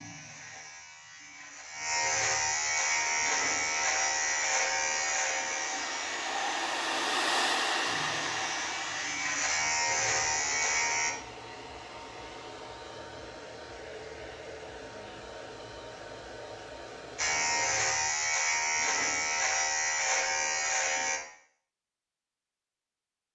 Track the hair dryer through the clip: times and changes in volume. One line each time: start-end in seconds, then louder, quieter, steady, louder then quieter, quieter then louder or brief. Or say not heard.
2.6-17.8 louder then quieter.